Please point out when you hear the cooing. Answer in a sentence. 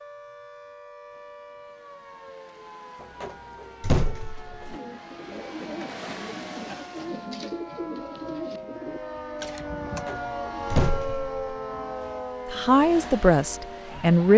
You can hear the cooing from 4.7 to 10.1 s.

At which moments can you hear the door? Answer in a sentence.
You can hear the door from 3.0 to 4.8 s and from 9.8 to 11.6 s.